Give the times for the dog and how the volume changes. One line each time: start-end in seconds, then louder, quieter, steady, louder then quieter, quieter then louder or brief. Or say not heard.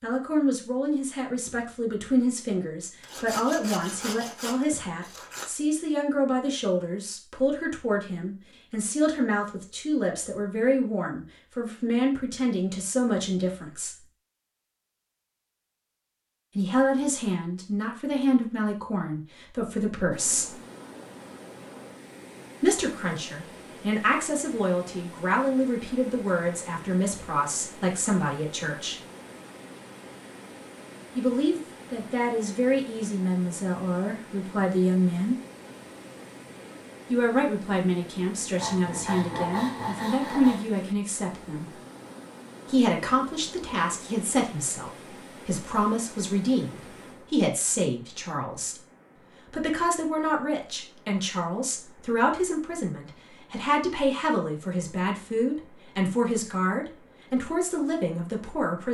not heard.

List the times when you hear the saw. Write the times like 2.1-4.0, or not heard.
3.0-5.5, 38.5-40.6.